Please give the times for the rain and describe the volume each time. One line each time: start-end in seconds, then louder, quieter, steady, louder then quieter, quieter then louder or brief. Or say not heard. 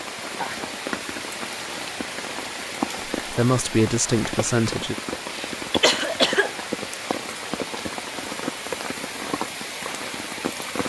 0.0-10.8 steady.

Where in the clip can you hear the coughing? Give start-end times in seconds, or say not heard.
5.3-7.0.